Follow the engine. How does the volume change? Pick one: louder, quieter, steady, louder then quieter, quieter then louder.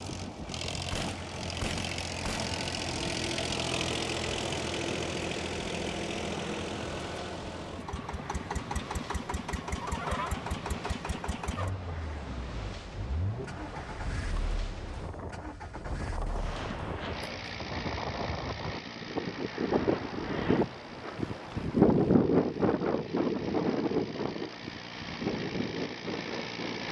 quieter.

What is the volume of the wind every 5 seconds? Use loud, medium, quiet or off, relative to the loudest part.
quiet, quiet, quiet, medium, loud, medium.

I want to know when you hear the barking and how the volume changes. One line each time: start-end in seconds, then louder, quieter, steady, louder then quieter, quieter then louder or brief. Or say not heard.
not heard.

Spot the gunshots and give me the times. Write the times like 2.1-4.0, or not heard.
0.7-2.5, 16.2-17.5.